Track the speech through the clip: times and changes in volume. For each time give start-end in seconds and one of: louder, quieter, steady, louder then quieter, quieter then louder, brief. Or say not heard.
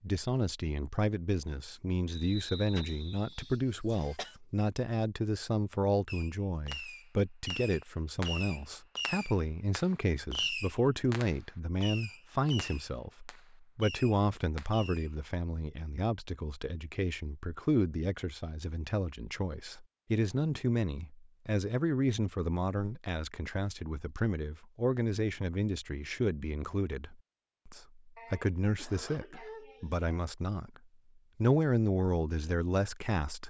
0.0-30.8 steady
31.4-33.4 brief.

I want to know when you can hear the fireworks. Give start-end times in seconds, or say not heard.
6.0-15.1.